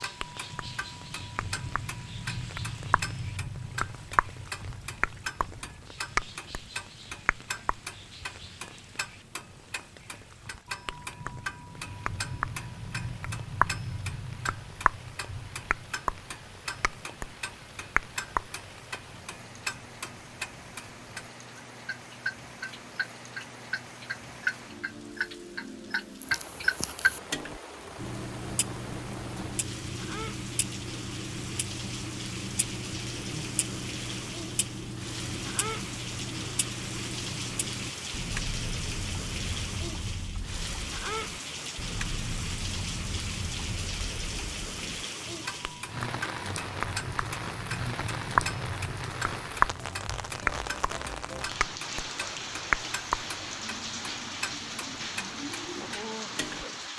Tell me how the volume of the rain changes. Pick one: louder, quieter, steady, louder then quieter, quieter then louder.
louder.